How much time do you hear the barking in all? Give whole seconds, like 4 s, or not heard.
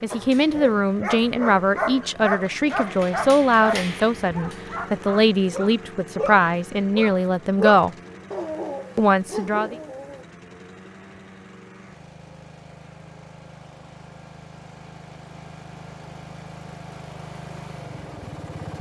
10 s.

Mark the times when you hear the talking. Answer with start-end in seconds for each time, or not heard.
0.0-7.9, 8.9-9.8.